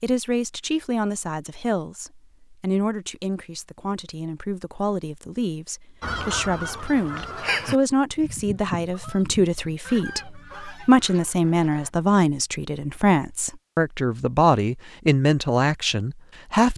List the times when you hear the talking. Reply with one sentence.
You can hear the talking from 0.0 to 16.7 s.